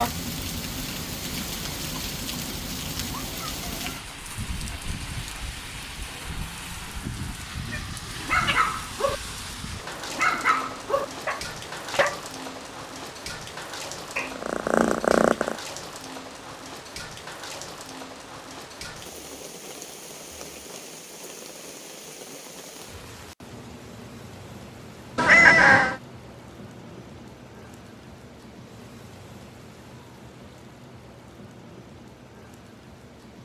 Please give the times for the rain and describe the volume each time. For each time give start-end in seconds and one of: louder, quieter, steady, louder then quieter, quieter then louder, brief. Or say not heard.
0.0-33.3 quieter.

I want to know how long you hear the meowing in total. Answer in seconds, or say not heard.
3 s.